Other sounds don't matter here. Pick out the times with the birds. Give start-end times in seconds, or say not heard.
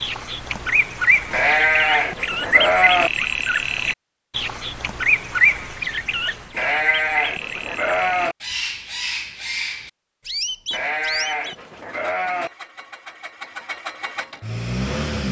0.0-11.6.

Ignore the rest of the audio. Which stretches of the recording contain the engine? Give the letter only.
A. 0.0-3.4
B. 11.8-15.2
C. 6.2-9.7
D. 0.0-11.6
B.